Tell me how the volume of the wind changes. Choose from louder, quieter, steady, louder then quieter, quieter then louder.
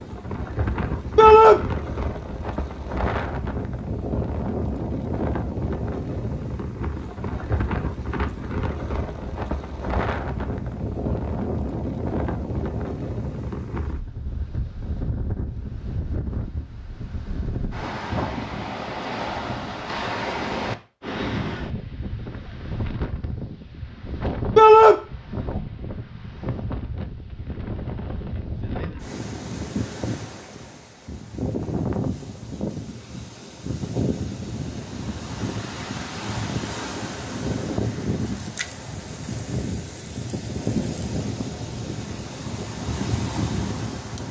steady.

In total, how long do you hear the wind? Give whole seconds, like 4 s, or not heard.
44 s.